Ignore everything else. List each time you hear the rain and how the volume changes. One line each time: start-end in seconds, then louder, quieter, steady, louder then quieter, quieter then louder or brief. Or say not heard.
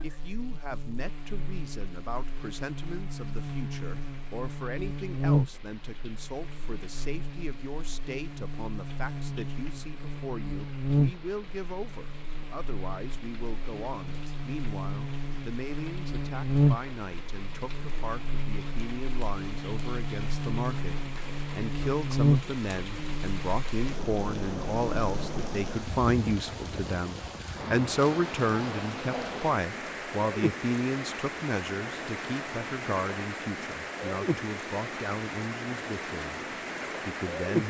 0.0-37.6 louder.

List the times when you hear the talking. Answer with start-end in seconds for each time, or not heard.
0.0-37.6.